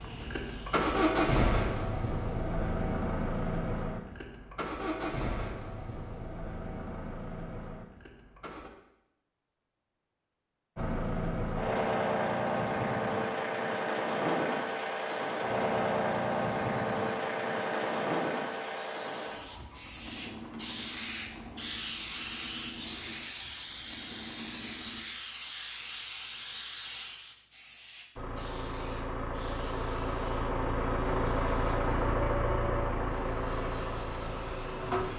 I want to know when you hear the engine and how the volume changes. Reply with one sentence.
You can hear the engine from 0.0 to 8.7 s, getting quieter; from 10.8 to 25.1 s, getting quieter; and from 28.1 to 35.1 s, getting louder then quieter.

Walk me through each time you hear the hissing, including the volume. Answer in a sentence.
The hissing can be heard briefly from 0.0 to 1.9 s; and from 14.4 to 35.1 s, getting louder then quieter.